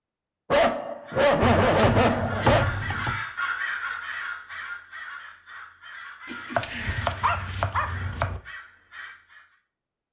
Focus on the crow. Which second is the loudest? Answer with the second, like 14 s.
4 s.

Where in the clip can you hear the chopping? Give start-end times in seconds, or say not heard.
1.4-3.2, 6.5-8.4.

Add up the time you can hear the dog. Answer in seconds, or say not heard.
4 s.